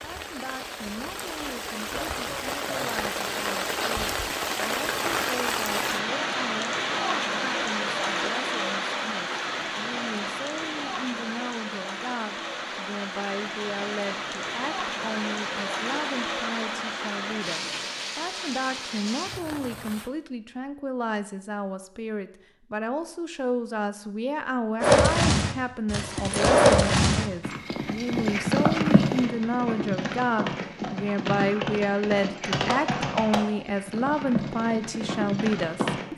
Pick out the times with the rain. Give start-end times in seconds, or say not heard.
0.0-20.1.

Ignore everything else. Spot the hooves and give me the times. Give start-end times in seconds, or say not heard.
24.8-36.0.